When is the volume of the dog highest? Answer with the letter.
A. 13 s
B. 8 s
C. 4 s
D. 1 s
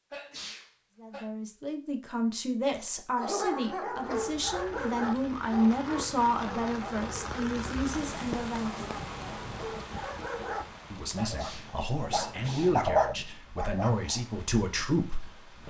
A.